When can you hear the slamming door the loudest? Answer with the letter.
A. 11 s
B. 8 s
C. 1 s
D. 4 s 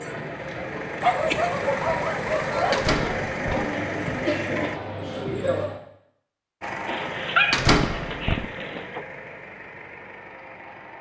B.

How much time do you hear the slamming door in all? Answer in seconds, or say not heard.
2 s.